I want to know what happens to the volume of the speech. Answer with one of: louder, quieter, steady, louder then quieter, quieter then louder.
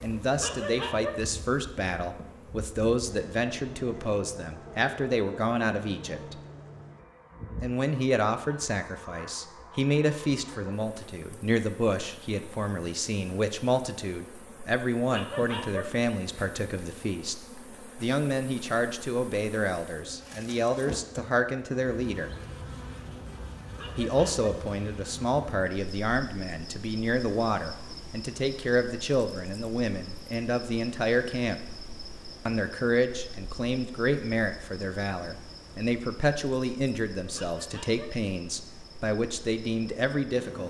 steady.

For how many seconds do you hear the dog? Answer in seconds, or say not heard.
3 s.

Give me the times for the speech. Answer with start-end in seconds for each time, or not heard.
0.0-6.3, 7.6-17.4, 18.0-22.3, 23.9-31.6, 32.5-40.6.